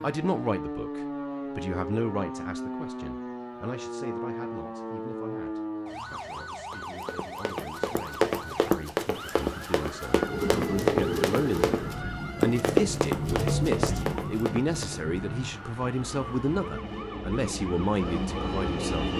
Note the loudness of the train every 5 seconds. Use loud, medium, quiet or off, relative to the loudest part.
off, off, loud, loud.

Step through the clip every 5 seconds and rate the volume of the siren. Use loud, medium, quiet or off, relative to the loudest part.
loud, loud, medium, medium.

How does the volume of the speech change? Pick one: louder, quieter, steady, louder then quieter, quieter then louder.
quieter then louder.